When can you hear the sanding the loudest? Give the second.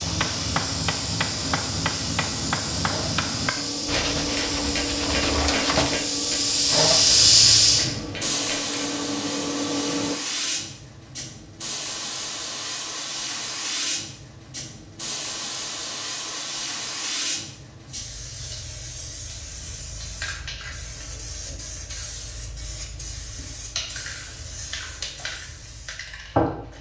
6 s.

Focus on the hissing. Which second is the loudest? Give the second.
7 s.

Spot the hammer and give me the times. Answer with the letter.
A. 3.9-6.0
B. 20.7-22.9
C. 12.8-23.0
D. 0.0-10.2
D.